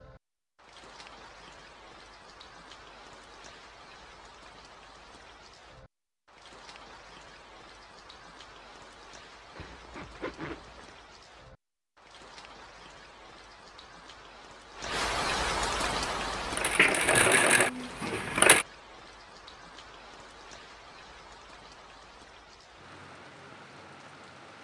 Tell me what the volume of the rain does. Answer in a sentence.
The volume of the rain goes up, then down.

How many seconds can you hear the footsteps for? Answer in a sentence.
You can't hear the footsteps here.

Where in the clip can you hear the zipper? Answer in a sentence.
You can hear the zipper from 9.6 to 10.9 s.